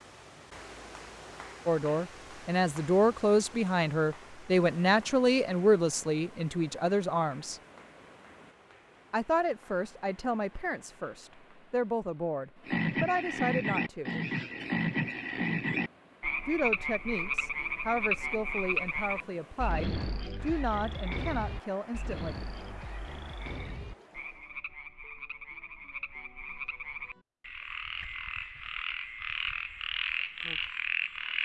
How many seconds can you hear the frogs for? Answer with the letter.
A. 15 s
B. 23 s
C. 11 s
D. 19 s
D.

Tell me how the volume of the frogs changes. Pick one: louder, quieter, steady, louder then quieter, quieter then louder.
quieter then louder.